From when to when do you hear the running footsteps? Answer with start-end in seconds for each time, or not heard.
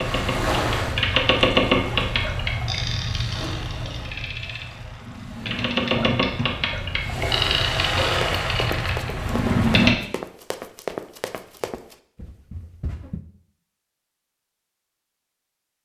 8.1-13.2.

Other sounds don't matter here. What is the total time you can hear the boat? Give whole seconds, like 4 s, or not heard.
10 s.